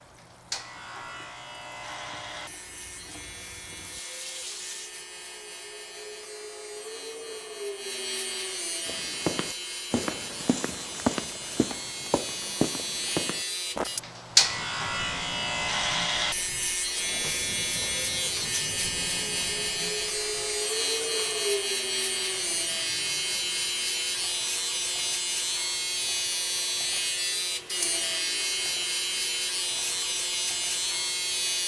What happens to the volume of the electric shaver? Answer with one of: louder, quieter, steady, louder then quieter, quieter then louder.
louder.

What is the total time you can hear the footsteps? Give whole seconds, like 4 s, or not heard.
5 s.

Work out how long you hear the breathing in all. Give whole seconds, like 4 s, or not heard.
not heard.